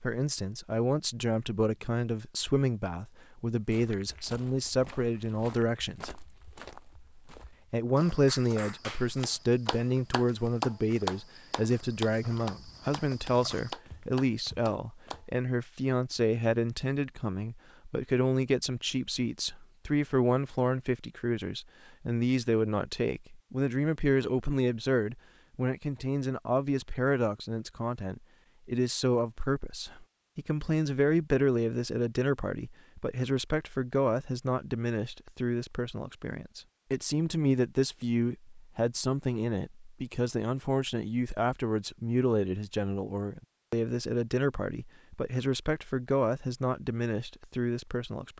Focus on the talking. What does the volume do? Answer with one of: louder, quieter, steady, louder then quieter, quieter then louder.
steady.